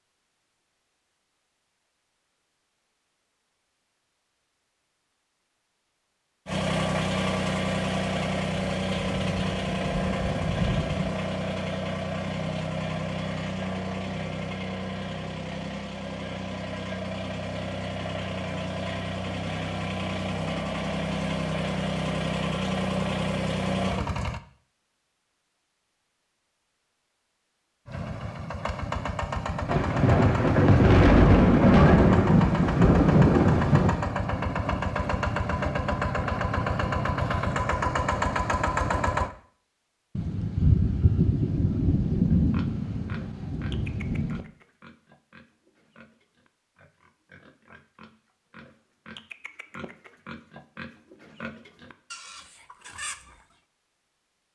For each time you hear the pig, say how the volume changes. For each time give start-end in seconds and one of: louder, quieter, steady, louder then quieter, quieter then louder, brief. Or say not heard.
42.3-53.5 quieter then louder.